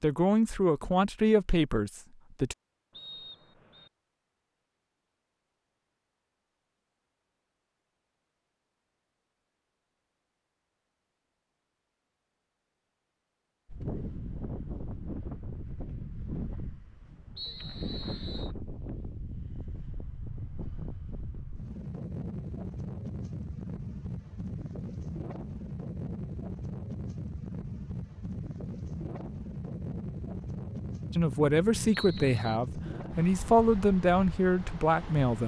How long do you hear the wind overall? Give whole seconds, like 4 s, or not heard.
22 s.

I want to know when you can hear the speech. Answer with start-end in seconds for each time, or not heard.
0.0-2.5, 31.1-35.4.